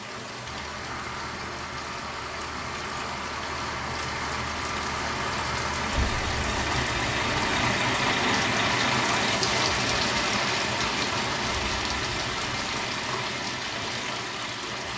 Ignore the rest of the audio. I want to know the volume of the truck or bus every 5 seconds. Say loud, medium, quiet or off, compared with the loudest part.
medium, loud, medium.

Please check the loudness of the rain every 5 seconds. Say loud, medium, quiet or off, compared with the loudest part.
medium, loud, loud.